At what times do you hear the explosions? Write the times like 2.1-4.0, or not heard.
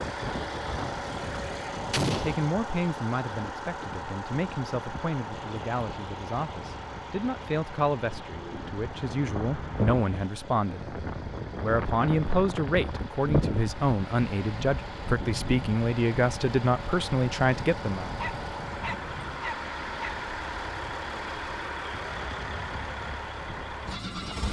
1.9-2.4.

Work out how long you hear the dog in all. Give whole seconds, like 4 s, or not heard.
2 s.